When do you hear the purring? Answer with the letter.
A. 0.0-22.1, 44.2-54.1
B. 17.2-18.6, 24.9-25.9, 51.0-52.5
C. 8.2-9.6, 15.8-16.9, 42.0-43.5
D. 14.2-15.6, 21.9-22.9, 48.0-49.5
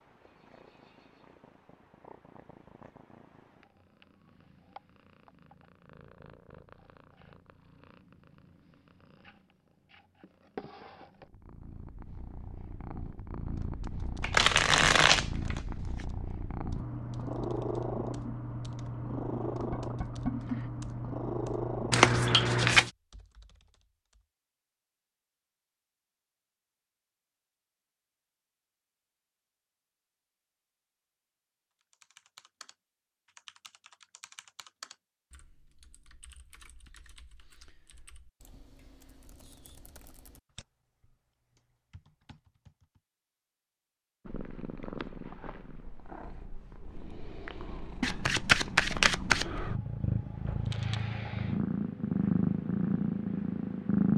A.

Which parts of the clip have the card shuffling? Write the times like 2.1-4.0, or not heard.
14.2-15.6, 21.9-22.9, 48.0-49.5.